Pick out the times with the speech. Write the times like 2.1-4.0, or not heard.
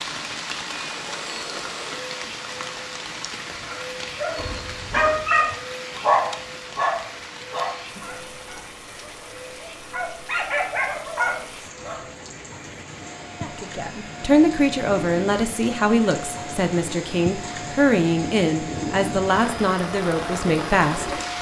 13.4-21.1.